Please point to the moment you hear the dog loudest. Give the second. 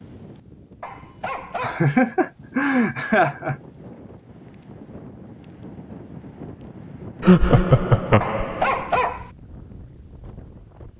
9 s.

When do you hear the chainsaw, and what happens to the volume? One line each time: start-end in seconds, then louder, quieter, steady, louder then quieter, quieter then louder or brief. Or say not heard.
not heard.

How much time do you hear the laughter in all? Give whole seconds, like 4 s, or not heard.
4 s.